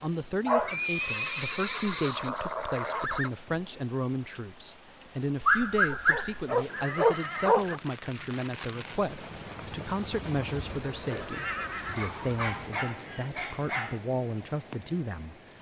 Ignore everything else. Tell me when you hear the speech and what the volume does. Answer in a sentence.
The speech can be heard from 0.0 to 15.5 s, at a steady volume.